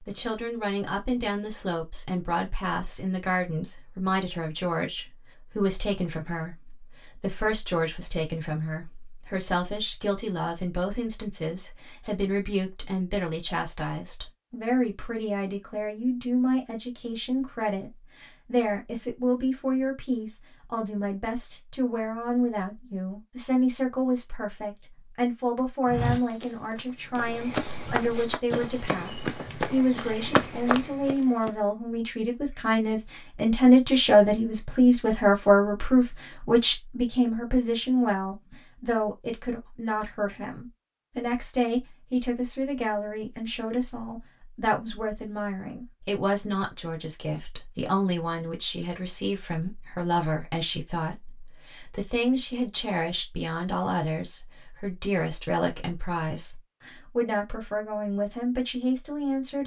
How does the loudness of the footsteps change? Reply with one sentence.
The loudness of the footsteps goes up.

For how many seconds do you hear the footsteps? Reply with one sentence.
You can hear the footsteps for 6 seconds altogether.